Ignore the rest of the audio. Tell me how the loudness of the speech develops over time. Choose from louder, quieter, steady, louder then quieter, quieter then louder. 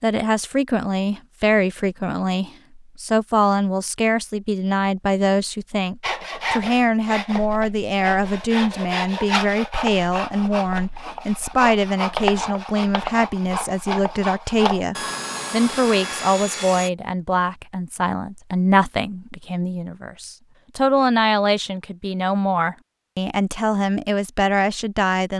steady.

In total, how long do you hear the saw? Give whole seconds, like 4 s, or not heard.
11 s.